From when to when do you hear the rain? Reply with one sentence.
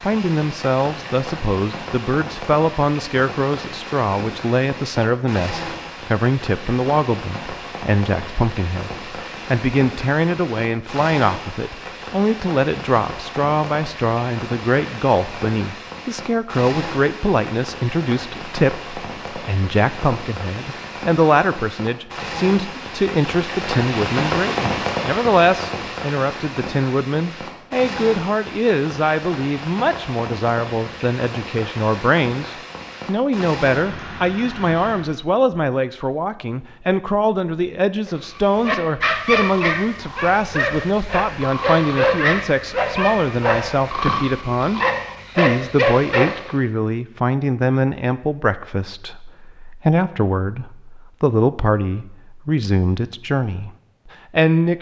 You can hear the rain from 0.0 to 35.1 s.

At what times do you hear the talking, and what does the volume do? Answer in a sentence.
You can hear the talking from 0.0 to 54.7 s, at a steady volume.